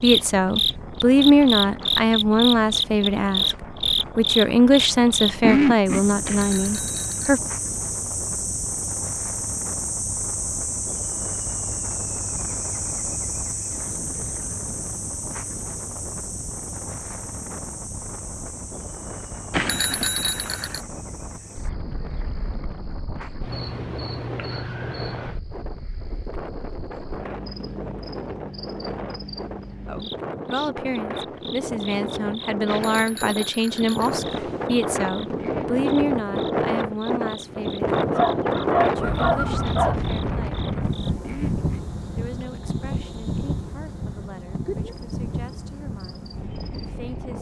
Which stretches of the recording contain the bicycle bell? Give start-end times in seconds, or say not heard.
6.2-7.3, 19.5-20.8, 32.6-34.7.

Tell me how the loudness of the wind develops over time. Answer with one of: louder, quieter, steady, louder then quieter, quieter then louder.
louder.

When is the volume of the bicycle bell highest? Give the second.
20 s.